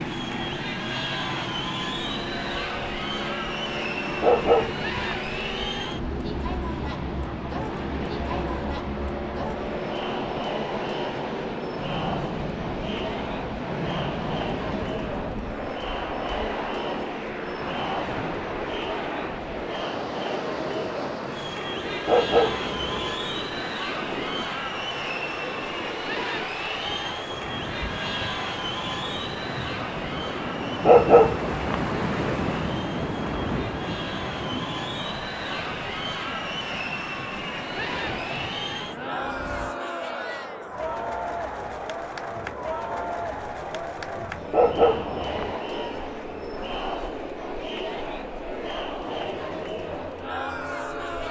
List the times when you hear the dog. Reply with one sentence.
The dog can be heard from 4.2 to 5.0 s, from 22.1 to 23.1 s, from 30.9 to 31.8 s and from 44.5 to 45.5 s.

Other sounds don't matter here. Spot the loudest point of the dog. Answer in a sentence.
The volume of the dog peaks at 31 seconds.